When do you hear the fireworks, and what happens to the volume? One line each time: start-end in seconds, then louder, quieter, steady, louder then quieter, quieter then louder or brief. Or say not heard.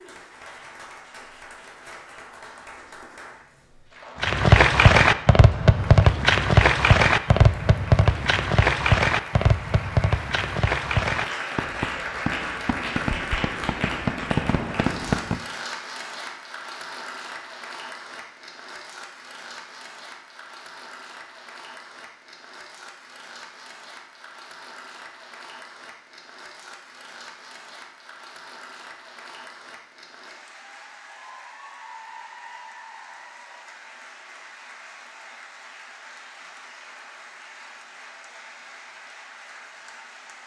4.2-15.4 quieter.